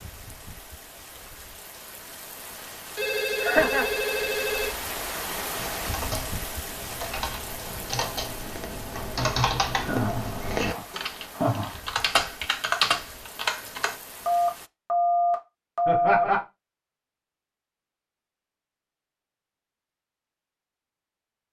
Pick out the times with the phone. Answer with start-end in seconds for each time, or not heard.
3.0-4.8, 14.2-16.2.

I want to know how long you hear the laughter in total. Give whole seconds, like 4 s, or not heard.
3 s.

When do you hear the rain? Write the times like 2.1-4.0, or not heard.
0.0-14.7.